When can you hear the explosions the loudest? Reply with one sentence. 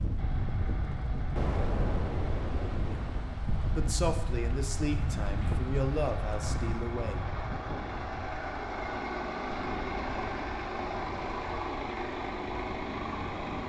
The volume of the explosions peaks at 2 seconds.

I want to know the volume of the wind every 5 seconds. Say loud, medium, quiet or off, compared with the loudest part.
loud, loud, quiet.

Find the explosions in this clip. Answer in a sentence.
You can hear the explosions from 1.4 to 3.4 s.